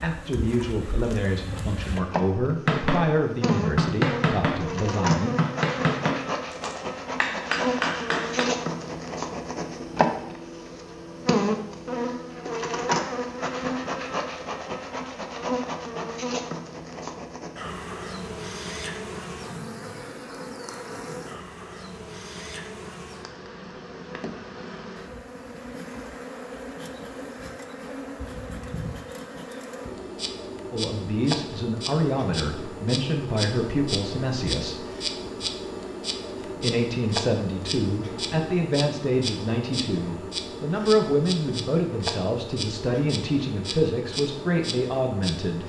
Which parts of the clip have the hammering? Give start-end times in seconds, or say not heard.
2.6-8.4.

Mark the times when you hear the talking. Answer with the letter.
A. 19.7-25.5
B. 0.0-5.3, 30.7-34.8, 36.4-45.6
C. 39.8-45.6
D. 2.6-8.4
B.